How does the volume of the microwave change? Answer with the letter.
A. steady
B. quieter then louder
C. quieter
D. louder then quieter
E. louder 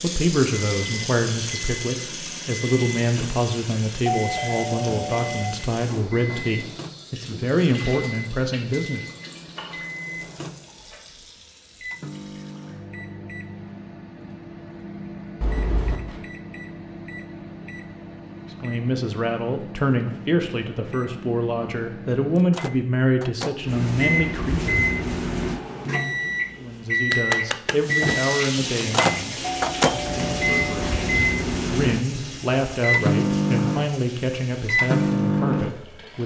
E.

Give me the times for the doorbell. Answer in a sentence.
You can hear the doorbell from 4.0 to 5.5 s, from 15.4 to 16.2 s and from 29.4 to 31.1 s.